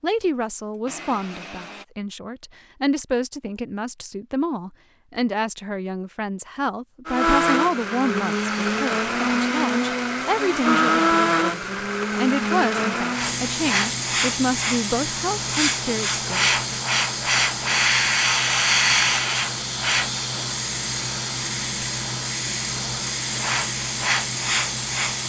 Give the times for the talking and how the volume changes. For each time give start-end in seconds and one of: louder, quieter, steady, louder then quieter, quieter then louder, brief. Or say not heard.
0.0-16.6 steady.